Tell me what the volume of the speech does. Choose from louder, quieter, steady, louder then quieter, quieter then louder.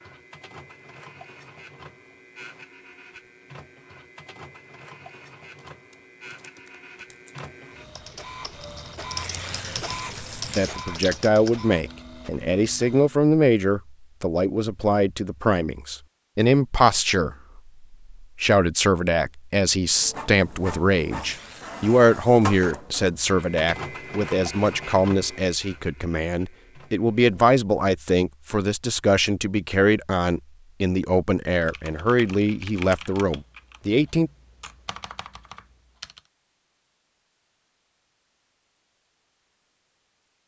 steady.